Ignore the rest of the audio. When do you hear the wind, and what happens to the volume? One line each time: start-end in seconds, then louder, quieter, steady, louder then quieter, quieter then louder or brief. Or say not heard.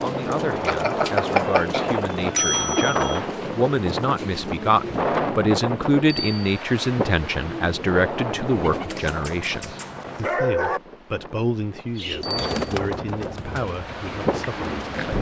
0.0-15.1 quieter then louder.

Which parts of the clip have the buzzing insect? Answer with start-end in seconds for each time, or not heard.
not heard.